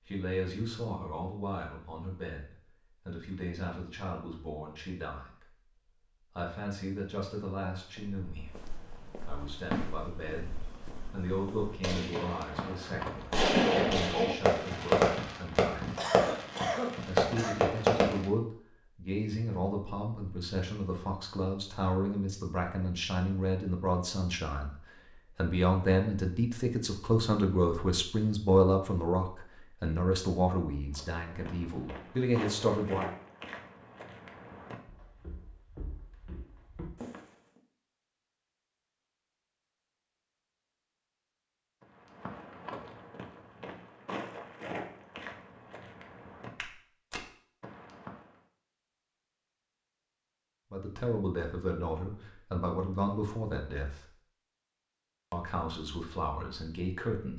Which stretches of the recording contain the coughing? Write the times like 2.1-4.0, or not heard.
15.5-17.6.